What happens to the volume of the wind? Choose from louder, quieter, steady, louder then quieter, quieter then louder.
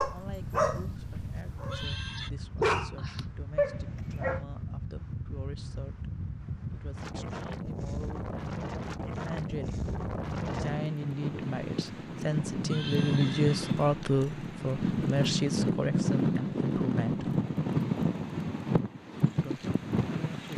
louder.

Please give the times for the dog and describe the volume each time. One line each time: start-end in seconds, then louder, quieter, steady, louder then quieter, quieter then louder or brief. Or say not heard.
0.0-4.5 quieter then louder.